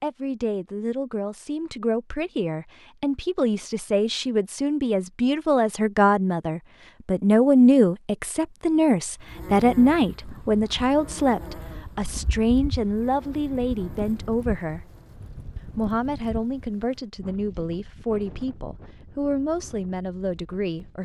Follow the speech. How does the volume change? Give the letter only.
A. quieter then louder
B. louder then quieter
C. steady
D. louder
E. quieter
B.